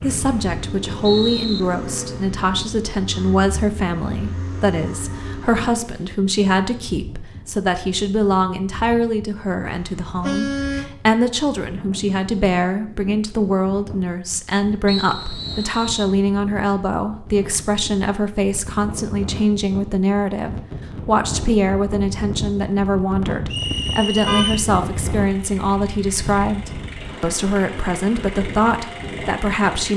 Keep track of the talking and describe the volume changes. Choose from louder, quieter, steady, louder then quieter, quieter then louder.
steady.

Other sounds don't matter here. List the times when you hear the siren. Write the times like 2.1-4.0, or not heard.
not heard.